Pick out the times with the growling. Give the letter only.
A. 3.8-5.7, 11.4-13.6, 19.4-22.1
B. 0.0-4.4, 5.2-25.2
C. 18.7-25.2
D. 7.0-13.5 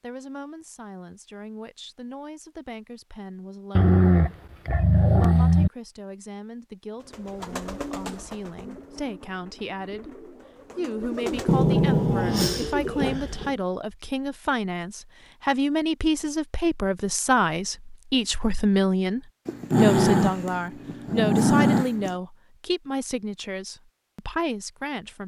A.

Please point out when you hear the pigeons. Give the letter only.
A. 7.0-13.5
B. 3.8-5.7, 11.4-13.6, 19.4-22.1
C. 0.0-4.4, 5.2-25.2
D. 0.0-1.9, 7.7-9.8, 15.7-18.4
A.